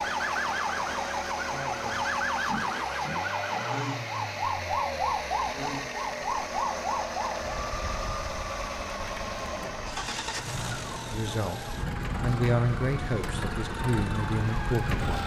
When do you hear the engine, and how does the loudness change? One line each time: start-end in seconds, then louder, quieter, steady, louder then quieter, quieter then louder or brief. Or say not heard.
0.0-15.2 steady.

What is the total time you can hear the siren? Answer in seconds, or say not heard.
15 s.